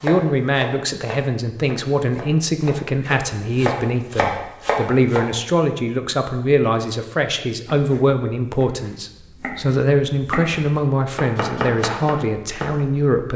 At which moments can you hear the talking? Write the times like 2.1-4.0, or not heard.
0.0-13.3.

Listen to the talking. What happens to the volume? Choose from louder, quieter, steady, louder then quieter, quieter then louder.
steady.